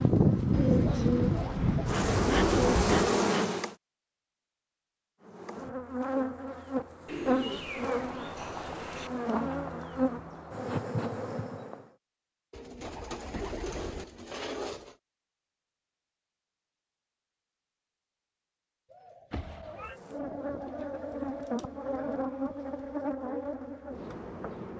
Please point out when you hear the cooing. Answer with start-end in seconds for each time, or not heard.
0.5-3.3, 7.0-9.1, 12.5-14.9, 18.9-21.8.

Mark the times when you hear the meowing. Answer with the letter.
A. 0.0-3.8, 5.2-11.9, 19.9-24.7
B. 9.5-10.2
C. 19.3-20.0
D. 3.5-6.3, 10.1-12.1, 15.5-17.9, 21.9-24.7
C.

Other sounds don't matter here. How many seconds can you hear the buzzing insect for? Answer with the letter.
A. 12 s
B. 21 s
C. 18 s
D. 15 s
D.